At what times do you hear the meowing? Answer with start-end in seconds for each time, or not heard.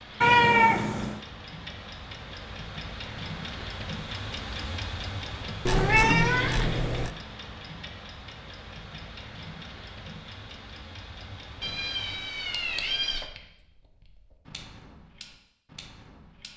0.2-1.2, 5.7-7.1, 11.6-13.3.